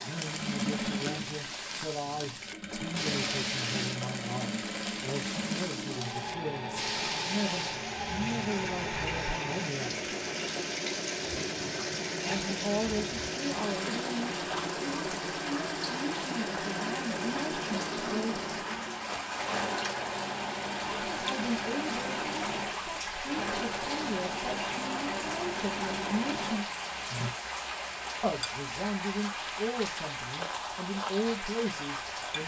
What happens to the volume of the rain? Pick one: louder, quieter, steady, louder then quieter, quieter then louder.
steady.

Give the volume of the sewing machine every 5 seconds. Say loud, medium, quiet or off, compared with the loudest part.
loud, loud, loud, loud, loud, loud, off.